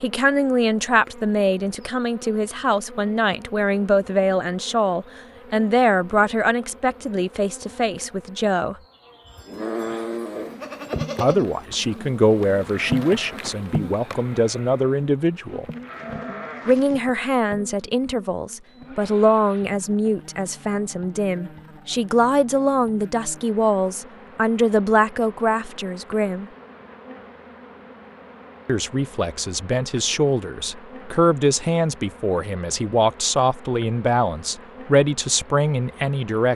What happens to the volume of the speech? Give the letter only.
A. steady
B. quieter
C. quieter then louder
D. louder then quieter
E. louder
A.